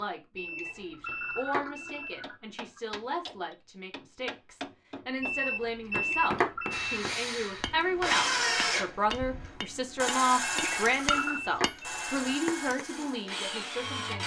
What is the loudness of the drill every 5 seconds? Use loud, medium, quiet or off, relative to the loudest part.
off, loud, loud.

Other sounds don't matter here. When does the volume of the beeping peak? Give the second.
6 s.